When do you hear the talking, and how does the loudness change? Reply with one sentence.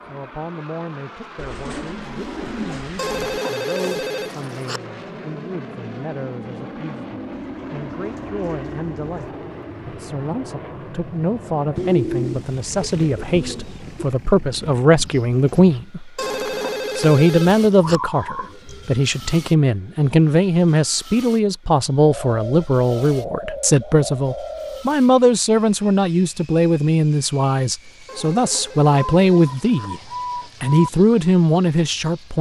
You can hear the talking from 0.0 to 16.1 s, getting louder; from 16.9 to 30.0 s, at a steady volume; and briefly from 30.6 to 32.3 s.